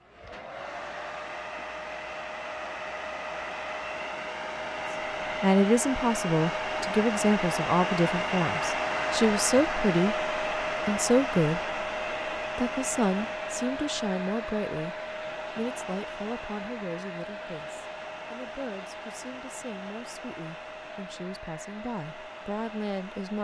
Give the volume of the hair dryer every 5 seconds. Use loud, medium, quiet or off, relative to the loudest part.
medium, loud, loud, medium, quiet.